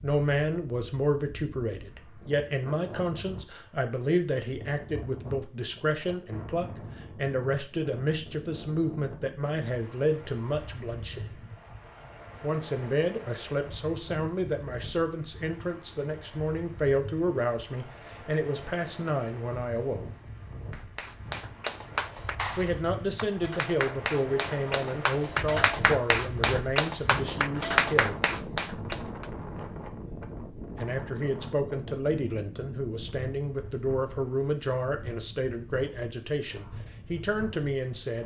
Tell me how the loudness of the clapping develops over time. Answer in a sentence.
The loudness of the clapping goes up.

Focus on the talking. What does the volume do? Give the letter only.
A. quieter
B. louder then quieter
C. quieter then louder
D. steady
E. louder
D.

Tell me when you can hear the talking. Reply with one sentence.
You can hear the talking from 0.0 to 11.2 s, from 12.4 to 20.1 s, from 22.6 to 28.2 s and from 30.8 to 38.2 s.